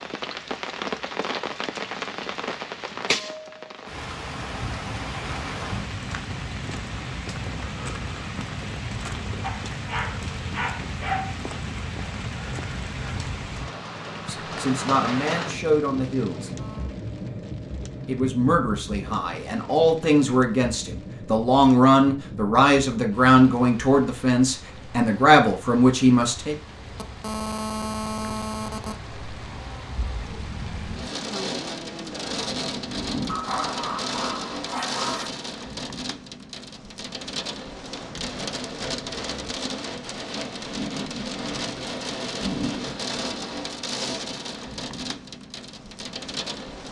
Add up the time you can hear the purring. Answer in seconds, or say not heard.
not heard.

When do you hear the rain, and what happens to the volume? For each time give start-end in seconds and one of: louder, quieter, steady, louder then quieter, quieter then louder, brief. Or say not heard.
0.0-46.8 quieter then louder.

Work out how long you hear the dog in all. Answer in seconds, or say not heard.
4 s.